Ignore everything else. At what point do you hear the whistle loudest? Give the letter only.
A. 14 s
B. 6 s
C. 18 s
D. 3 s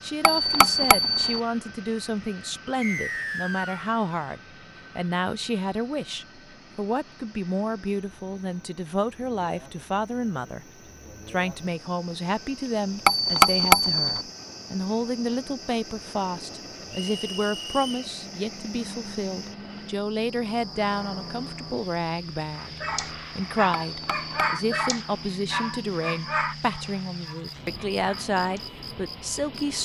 D.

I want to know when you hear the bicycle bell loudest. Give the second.
14 s.